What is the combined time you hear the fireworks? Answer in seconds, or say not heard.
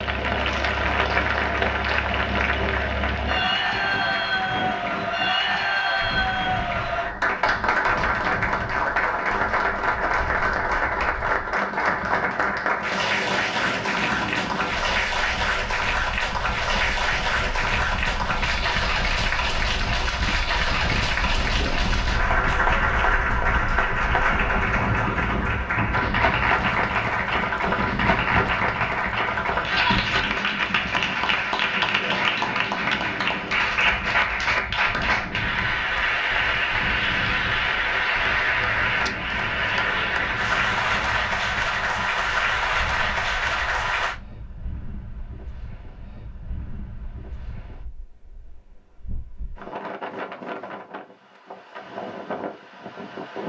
not heard.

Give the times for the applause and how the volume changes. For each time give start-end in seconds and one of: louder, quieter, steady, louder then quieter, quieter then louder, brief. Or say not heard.
0.0-44.1 steady.